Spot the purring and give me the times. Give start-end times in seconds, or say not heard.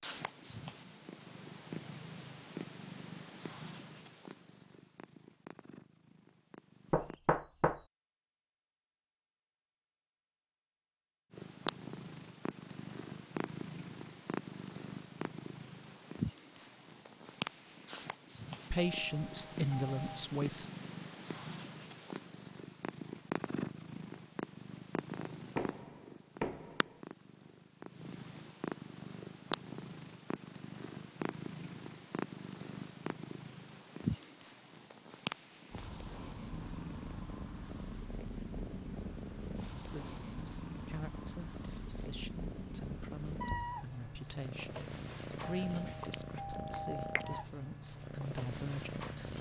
0.0-7.2, 11.3-49.3.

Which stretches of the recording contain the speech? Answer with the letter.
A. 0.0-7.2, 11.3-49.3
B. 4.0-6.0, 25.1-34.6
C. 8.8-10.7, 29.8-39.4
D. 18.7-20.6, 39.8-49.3
D.